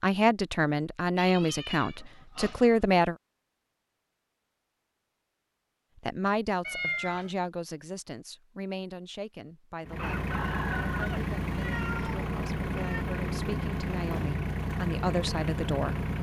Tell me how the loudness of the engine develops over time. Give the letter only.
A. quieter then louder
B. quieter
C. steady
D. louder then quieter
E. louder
C.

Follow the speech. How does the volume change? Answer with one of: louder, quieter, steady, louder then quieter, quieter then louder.
quieter then louder.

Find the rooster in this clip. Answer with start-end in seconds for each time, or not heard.
9.9-11.2.